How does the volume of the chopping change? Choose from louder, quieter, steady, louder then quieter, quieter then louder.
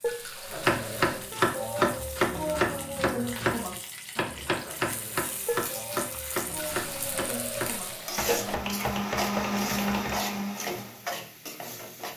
quieter.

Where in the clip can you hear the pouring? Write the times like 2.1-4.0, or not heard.
0.1-1.3, 6.5-8.6.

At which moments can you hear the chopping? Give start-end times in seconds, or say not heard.
0.5-10.2.